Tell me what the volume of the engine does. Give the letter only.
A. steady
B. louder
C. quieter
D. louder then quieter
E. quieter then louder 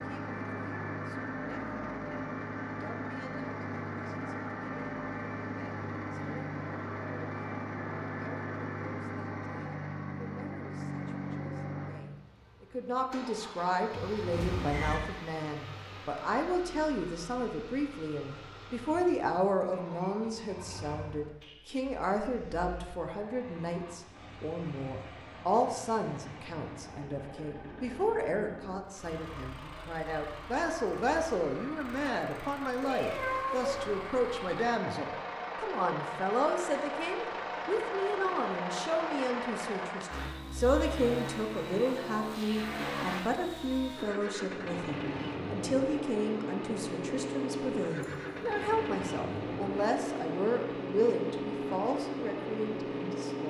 E.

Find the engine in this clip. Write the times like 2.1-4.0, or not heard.
0.0-53.4.